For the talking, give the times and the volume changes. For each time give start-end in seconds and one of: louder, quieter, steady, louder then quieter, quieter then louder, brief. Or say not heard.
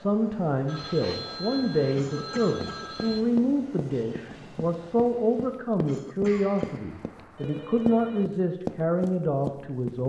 0.0-10.0 steady.